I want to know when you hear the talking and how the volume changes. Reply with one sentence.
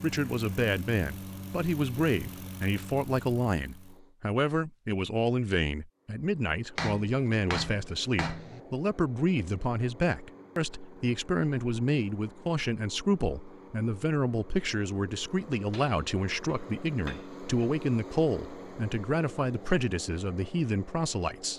You can hear the talking from 0.0 to 21.5 s, at a steady volume.